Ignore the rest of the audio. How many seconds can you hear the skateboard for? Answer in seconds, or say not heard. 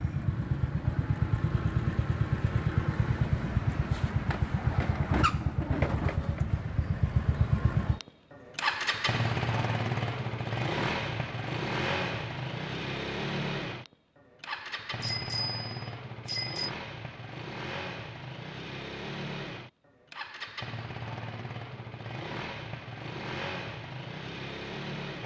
not heard.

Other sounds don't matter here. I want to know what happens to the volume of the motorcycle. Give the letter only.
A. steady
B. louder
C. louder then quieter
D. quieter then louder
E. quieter
E.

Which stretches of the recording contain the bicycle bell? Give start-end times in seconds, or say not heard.
15.0-16.7.